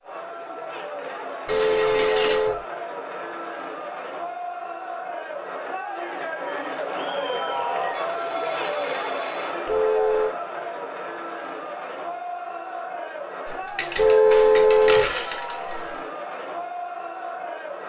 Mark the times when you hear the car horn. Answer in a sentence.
The car horn can be heard from 1.4 to 2.6 s, from 9.7 to 10.3 s and from 13.9 to 15.1 s.